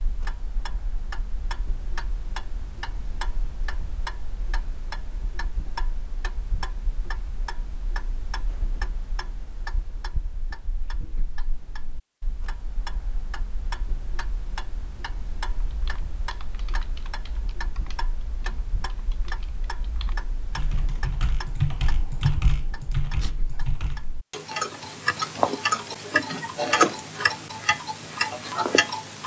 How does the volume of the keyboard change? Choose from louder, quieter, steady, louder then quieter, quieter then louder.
louder.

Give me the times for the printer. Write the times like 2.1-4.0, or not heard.
not heard.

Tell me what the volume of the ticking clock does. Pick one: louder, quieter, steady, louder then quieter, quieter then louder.
louder.